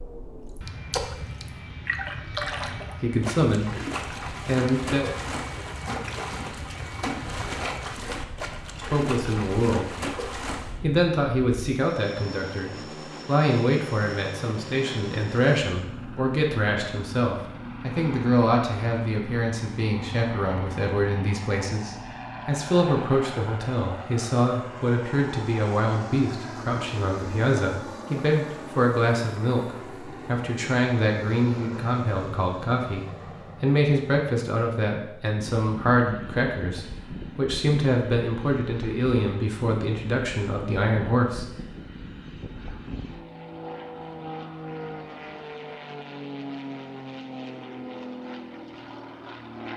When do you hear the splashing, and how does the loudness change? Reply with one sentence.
You can hear the splashing from 0.6 to 10.8 s, at a steady volume.